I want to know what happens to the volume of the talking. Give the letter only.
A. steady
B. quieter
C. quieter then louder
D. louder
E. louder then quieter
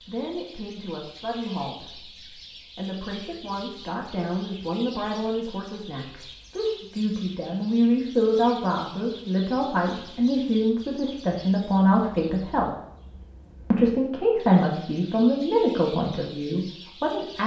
D.